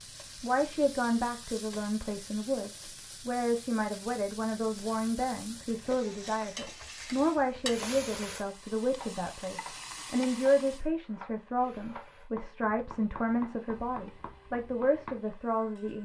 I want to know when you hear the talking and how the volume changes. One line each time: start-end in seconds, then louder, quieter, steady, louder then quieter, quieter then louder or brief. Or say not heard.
0.4-16.0 steady.